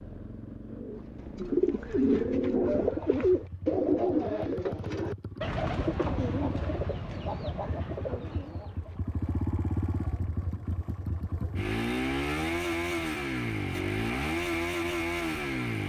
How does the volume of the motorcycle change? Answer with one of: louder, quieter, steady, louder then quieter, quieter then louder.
louder.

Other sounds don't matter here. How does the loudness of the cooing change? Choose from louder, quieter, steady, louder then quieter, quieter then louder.
quieter.